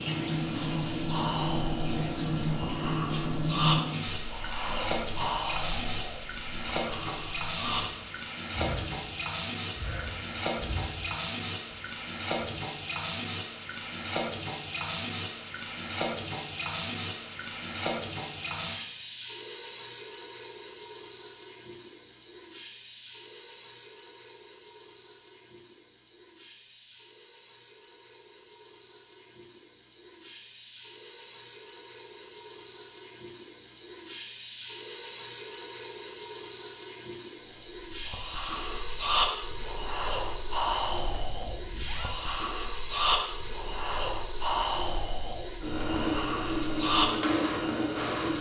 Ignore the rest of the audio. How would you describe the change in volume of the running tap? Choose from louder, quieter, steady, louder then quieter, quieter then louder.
quieter then louder.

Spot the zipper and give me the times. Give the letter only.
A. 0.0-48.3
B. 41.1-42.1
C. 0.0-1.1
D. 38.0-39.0
B.